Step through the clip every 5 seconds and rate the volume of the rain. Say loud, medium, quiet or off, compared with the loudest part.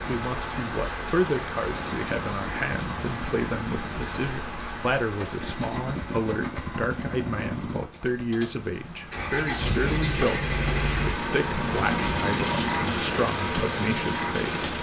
loud, medium, loud.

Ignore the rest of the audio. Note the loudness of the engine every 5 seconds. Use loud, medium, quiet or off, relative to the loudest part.
medium, medium, loud.